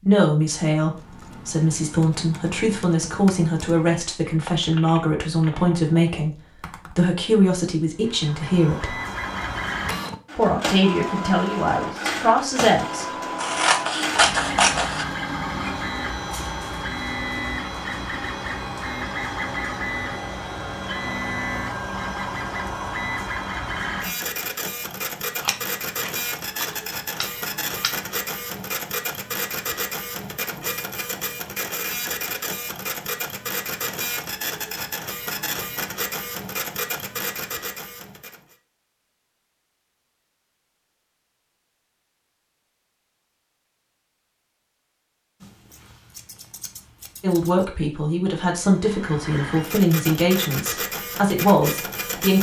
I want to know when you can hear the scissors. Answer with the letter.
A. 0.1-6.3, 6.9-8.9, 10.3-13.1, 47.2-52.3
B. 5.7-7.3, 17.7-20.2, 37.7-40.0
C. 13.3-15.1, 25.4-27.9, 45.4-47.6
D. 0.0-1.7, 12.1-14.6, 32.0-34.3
C.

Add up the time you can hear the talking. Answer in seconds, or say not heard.
16 s.